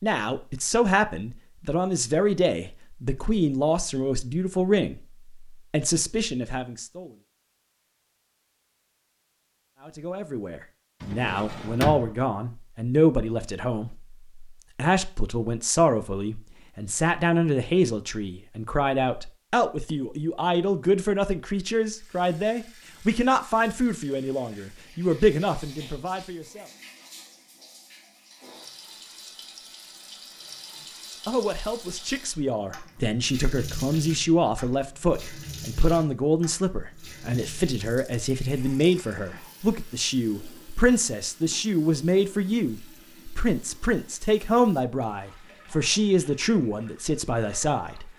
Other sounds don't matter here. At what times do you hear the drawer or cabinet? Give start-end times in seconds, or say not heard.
11.0-12.2.